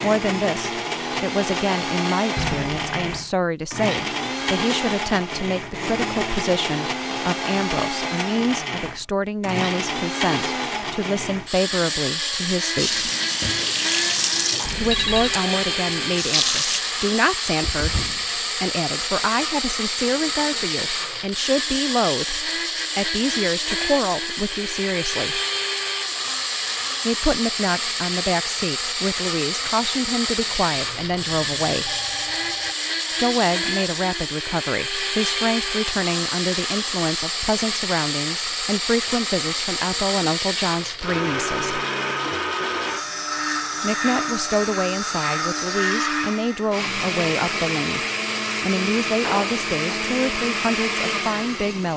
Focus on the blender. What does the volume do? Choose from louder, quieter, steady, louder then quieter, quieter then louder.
steady.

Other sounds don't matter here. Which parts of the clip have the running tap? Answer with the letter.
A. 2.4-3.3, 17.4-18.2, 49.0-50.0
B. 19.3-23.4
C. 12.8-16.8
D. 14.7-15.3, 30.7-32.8
C.